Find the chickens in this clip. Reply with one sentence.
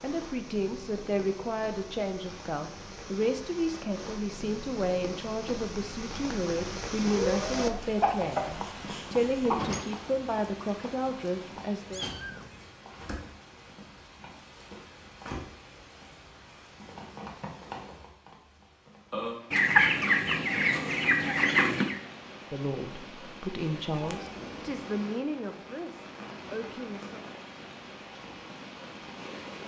The chickens can be heard from 8.0 to 9.8 s and from 19.5 to 21.9 s.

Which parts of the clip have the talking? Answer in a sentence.
You can hear the talking from 0.0 to 12.0 s and from 22.5 to 27.2 s.